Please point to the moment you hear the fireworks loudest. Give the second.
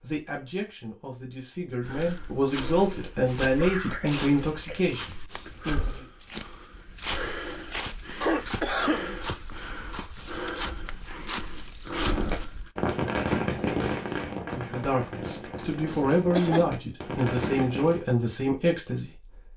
13 s.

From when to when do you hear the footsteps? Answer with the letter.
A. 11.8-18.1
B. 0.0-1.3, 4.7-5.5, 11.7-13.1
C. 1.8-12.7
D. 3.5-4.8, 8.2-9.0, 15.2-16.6
C.